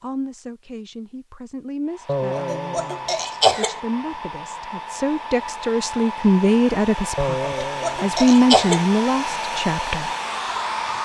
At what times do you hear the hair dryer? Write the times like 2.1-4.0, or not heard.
1.9-11.0.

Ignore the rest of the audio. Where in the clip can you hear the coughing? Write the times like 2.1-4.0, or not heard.
2.0-3.8, 7.2-8.8.